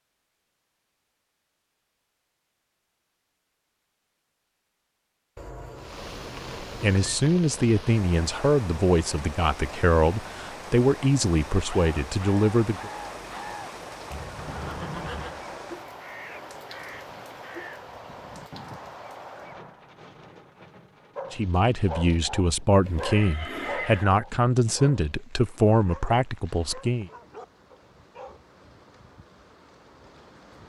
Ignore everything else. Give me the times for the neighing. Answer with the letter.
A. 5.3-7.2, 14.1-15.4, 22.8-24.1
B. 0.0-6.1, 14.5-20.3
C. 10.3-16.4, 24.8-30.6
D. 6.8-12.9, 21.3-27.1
A.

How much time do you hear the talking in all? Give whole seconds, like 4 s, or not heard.
12 s.